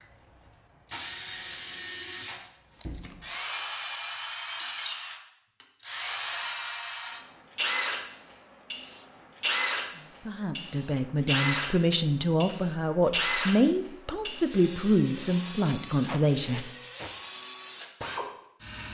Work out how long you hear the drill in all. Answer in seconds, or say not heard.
19 s.